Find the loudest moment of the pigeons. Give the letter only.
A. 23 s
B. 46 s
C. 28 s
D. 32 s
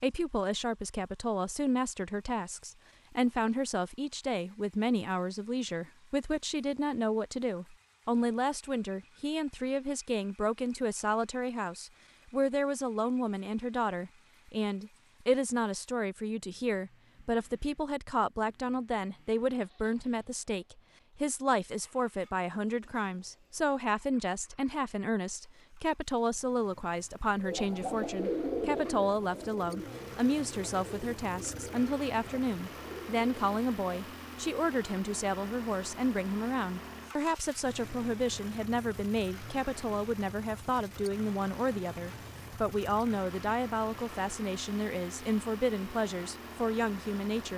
C.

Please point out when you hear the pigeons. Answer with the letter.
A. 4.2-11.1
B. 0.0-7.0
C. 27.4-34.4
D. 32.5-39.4
C.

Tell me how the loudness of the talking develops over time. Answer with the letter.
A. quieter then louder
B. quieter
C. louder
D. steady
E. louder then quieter
D.